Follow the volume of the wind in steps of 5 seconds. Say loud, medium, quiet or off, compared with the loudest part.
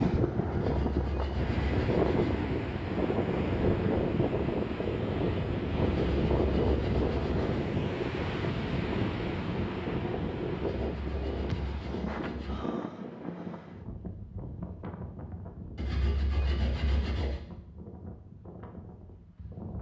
loud, loud, medium, quiet.